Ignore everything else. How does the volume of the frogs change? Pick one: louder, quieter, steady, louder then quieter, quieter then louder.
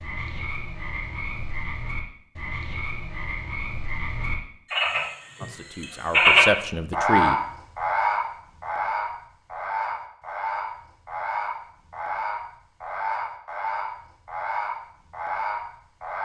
louder then quieter.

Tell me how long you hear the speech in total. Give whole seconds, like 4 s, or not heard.
2 s.